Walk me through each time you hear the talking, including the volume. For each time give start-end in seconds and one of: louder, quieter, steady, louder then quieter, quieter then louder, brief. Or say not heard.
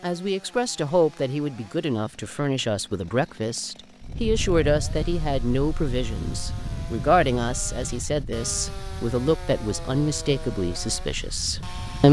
0.0-12.0 steady.